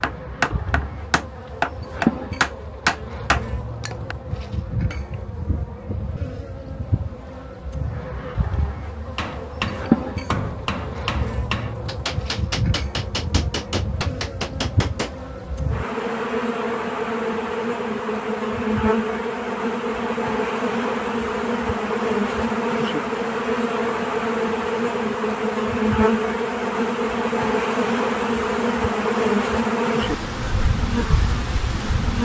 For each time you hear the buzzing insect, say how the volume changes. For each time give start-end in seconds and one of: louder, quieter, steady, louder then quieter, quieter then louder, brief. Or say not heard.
0.0-32.1 louder.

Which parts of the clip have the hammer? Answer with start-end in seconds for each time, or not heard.
0.0-4.2, 9.2-15.2.